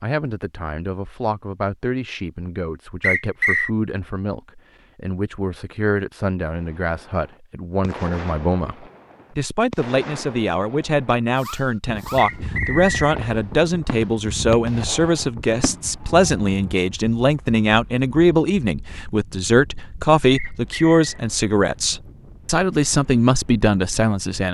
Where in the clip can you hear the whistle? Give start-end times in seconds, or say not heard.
3.0-3.7, 12.2-13.2, 20.3-21.2.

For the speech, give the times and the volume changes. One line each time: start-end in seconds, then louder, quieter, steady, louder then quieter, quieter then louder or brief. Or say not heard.
0.0-24.4 louder.